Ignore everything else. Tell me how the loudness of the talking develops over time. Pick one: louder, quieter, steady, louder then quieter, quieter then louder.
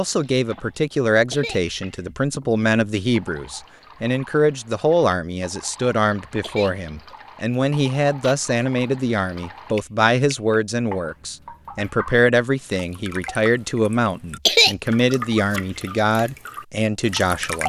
steady.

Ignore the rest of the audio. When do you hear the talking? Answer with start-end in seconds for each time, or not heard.
0.0-17.6.